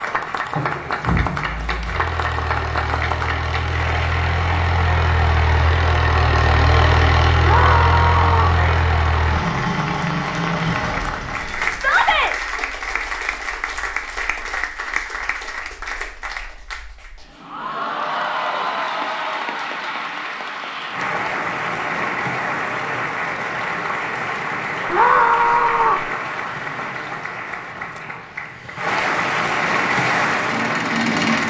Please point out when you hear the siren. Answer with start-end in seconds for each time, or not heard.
not heard.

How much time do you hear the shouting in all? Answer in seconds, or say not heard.
3 s.